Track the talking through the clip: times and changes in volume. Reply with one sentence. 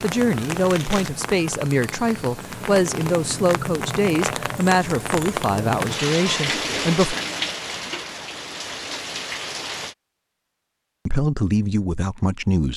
The talking can be heard from 0.0 to 7.2 s, at a steady volume; and briefly from 11.1 to 12.7 s.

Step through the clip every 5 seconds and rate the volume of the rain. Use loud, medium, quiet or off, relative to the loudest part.
loud, loud, off.